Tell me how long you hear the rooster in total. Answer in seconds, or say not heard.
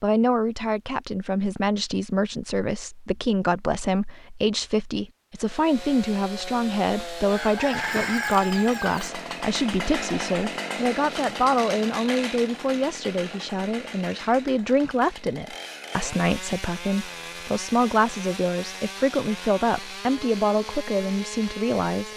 2 s.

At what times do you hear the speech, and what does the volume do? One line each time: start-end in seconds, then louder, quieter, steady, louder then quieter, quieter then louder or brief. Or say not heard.
0.0-22.1 steady.